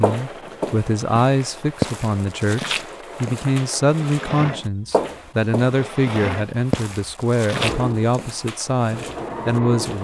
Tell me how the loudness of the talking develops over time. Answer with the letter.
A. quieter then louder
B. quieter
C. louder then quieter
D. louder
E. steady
E.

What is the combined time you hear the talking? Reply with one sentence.
The talking can be heard for 10 seconds in total.